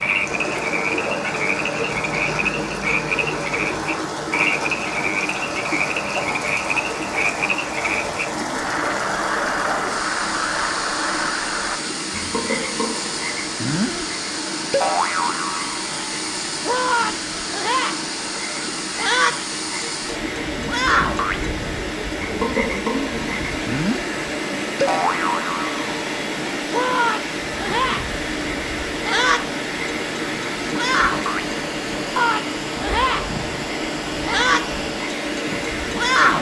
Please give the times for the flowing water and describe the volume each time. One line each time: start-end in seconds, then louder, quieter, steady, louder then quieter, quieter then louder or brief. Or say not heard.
0.0-36.3 steady.